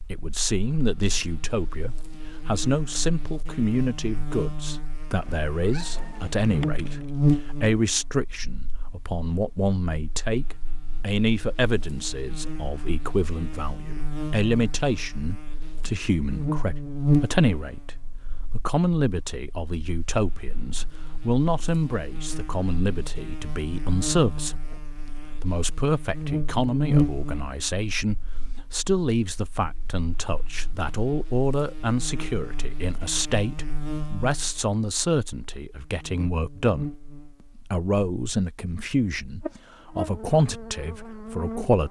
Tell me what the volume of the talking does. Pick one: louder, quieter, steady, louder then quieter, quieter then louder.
steady.